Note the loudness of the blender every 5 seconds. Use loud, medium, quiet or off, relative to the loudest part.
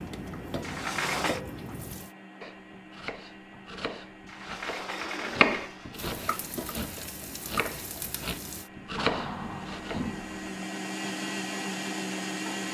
quiet, quiet, loud.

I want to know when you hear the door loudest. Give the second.
1 s.